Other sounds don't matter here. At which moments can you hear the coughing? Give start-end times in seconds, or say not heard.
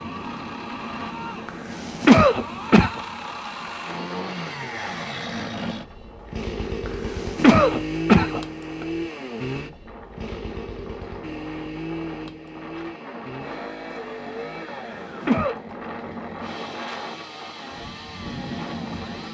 1.4-3.0, 6.8-8.8, 14.8-15.6.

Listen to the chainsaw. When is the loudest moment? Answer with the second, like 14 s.
8 s.